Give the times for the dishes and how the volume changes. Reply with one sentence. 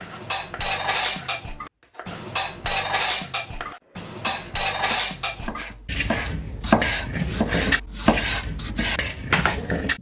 The dishes can be heard from 0.0 to 9.9 s, at a steady volume.